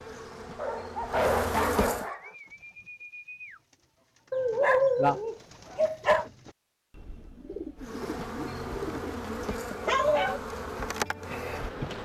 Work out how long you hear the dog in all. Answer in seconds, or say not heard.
5 s.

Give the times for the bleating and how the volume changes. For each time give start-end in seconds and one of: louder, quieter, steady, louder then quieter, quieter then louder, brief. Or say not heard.
not heard.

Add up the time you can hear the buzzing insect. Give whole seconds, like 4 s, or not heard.
6 s.